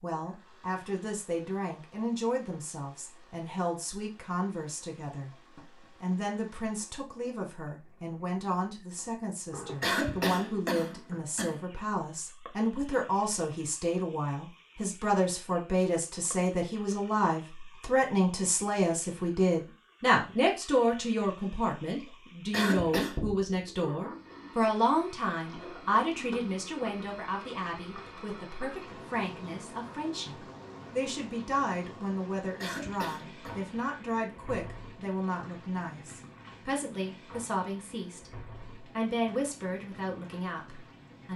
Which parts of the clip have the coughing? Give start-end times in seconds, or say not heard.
9.8-11.6, 22.5-23.2, 32.5-33.5.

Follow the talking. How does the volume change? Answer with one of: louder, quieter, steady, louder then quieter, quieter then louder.
louder then quieter.